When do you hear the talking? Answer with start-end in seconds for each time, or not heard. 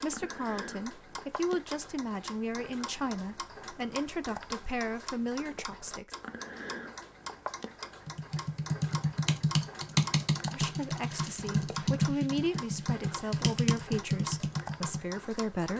0.0-6.2, 10.5-15.7.